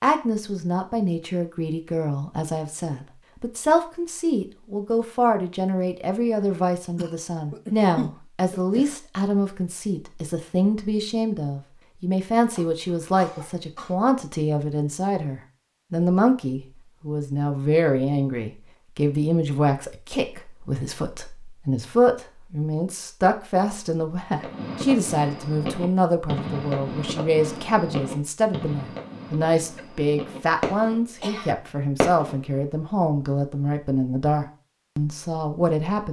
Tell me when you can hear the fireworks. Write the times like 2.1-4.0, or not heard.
24.4-31.2, 32.0-32.6.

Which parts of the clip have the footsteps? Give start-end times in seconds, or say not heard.
not heard.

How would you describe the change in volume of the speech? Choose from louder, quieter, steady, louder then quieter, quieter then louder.
steady.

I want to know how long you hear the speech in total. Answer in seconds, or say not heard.
36 s.